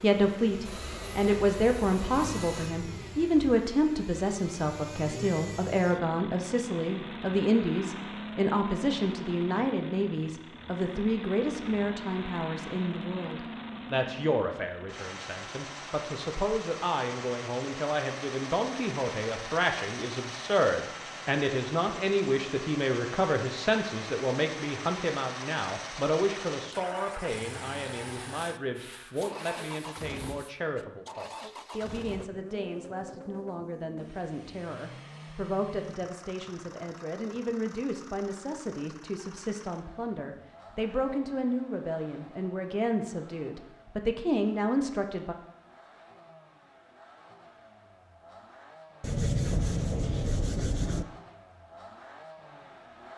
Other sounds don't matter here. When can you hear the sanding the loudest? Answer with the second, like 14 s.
49 s.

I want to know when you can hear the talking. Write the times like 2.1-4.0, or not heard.
0.0-45.4.